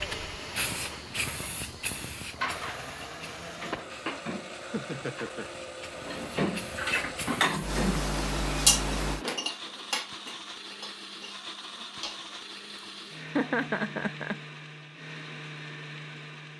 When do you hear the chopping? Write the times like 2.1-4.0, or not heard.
not heard.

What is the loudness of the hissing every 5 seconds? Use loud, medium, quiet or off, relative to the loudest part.
loud, loud, off, off.